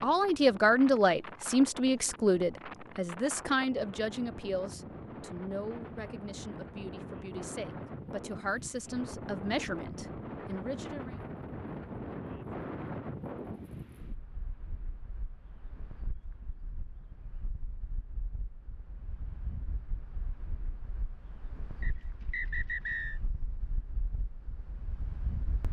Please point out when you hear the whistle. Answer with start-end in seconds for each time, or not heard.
21.8-23.2.